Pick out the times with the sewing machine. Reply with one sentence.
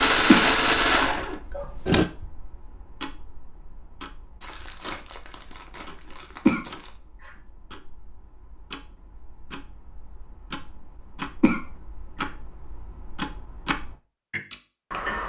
The sewing machine can be heard from 0.0 to 2.0 s.